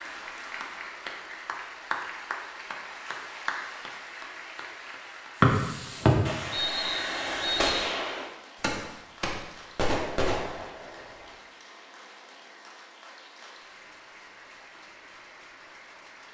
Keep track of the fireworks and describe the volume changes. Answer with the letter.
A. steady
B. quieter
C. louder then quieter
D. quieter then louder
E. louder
E.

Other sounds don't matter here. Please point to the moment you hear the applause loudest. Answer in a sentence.
The volume of the applause peaks at 2 seconds.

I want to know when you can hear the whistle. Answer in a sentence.
You can hear the whistle from 5.4 to 7.9 s.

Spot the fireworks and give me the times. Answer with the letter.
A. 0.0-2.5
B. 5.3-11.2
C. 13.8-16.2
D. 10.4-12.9
B.